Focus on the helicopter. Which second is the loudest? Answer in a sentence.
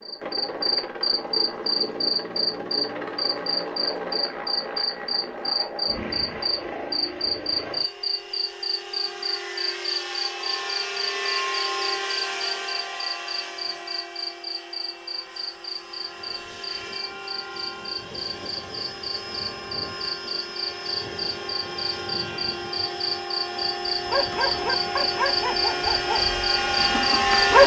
The volume of the helicopter peaks at 27 seconds.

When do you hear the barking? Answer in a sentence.
The barking can be heard from 23.9 to 27.6 s.